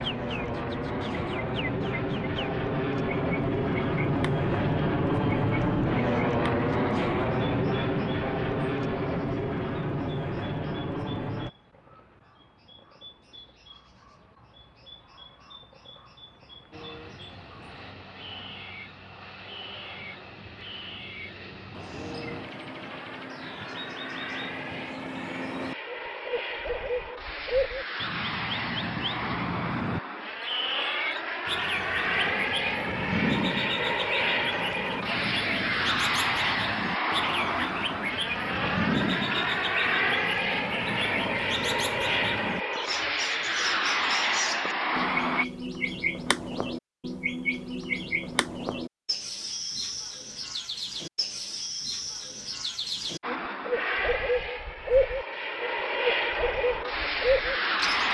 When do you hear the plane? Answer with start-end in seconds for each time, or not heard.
0.0-11.5, 16.7-45.5, 53.2-58.0.